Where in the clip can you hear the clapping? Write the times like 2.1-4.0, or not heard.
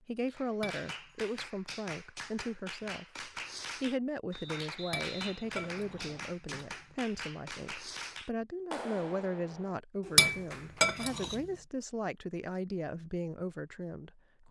0.2-10.9.